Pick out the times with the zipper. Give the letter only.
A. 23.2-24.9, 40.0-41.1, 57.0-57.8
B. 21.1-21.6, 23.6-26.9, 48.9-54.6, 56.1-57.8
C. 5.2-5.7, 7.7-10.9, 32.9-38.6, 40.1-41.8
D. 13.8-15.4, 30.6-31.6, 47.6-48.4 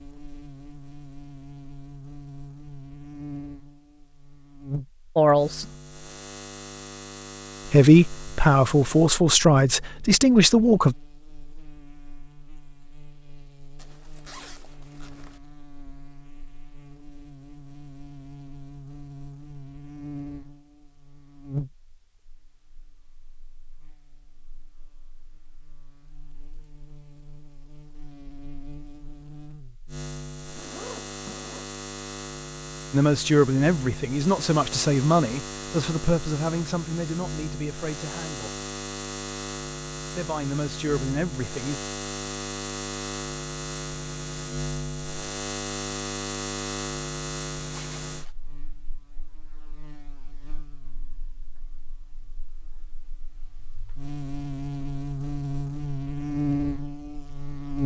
D.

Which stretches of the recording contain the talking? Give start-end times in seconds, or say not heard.
5.2-5.7, 7.7-10.9, 32.9-38.6, 40.1-41.8.